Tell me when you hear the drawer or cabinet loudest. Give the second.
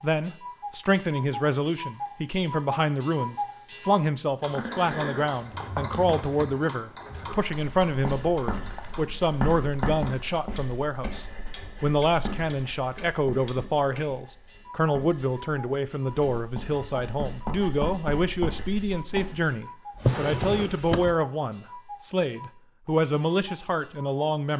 20 s.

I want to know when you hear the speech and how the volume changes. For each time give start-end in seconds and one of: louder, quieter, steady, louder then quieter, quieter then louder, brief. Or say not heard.
0.0-24.5 steady.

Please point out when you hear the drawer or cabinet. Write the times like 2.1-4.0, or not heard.
5.4-7.3, 19.9-21.2.